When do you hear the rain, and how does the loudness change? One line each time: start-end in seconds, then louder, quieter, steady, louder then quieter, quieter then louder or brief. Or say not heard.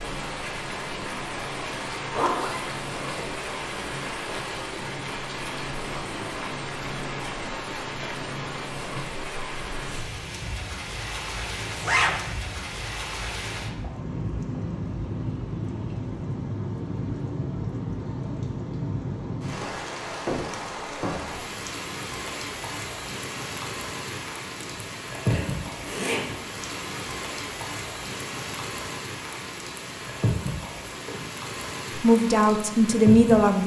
0.0-33.6 steady.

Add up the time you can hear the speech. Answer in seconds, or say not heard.
2 s.